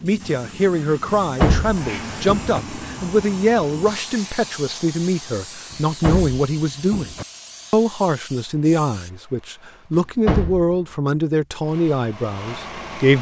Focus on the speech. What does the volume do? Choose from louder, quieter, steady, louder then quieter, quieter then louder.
steady.